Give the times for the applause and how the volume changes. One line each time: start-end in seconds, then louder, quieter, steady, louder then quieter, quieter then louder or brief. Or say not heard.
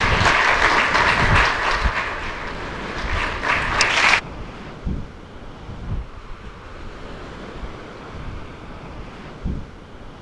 0.0-4.2 quieter then louder.